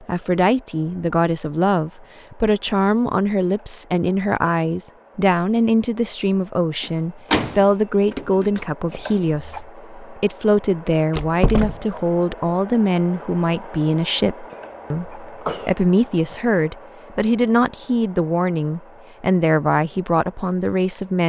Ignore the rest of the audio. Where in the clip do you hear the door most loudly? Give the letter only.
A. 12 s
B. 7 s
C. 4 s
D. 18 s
B.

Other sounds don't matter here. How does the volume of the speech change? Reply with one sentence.
The volume of the speech stays about the same.